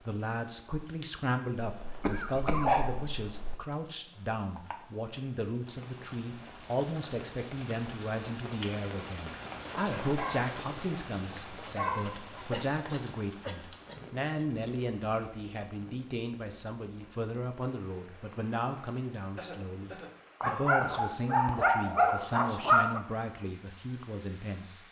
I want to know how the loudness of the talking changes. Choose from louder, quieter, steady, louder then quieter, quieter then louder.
steady.